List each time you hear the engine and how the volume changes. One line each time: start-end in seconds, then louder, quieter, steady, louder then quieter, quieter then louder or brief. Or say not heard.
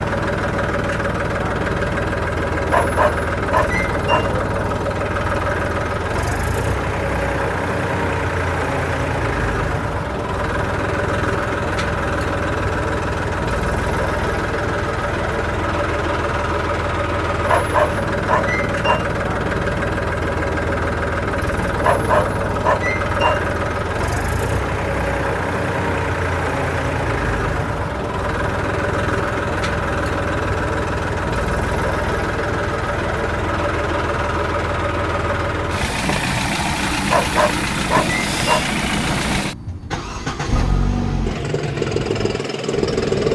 0.0-43.2 steady.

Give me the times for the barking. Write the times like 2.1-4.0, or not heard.
2.7-4.3, 17.4-19.1, 21.8-23.4, 37.0-38.7.